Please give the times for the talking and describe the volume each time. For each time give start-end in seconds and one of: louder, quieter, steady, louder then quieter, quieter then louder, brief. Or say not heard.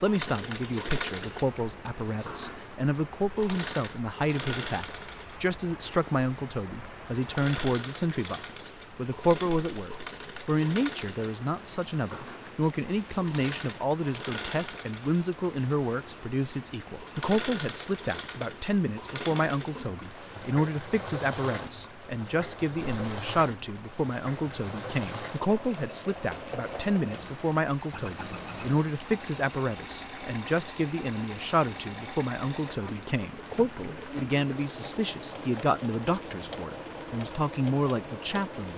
0.0-38.7 steady.